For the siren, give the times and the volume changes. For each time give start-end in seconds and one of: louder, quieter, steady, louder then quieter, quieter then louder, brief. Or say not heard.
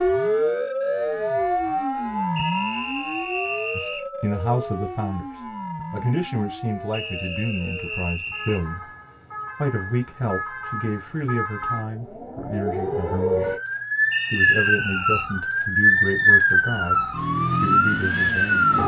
0.0-18.8 quieter then louder.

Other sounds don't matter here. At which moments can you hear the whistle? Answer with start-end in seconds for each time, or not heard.
2.4-4.0, 6.9-8.6, 14.1-15.2.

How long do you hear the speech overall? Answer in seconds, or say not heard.
13 s.